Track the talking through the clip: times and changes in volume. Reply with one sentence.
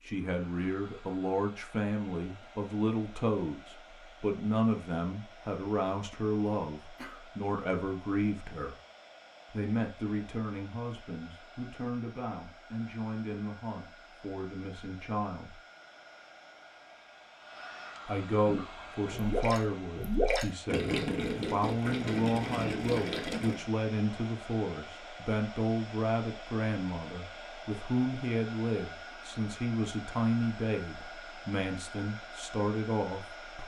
The talking can be heard from 0.0 to 8.8 s, at a steady volume; from 9.5 to 15.6 s, at a steady volume; and from 18.1 to 33.6 s, at a steady volume.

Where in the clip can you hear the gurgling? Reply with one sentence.
You can hear the gurgling from 18.4 to 23.6 s.